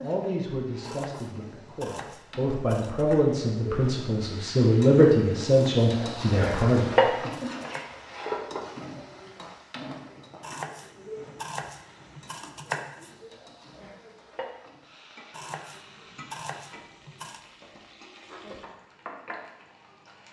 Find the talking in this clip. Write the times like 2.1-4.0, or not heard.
0.0-7.3.